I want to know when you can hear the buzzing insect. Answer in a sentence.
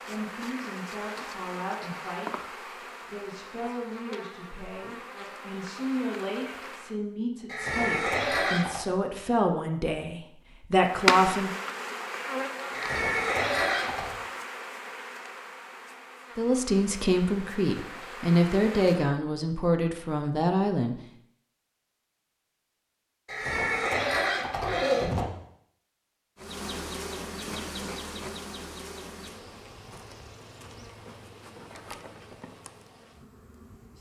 The buzzing insect can be heard from 0.0 to 7.0 s, from 10.8 to 19.1 s and from 26.4 to 33.9 s.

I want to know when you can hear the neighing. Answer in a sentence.
The neighing can be heard from 7.5 to 8.8 s, from 12.7 to 14.2 s and from 23.2 to 25.2 s.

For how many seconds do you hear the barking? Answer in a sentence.
The barking can't be heard in this clip.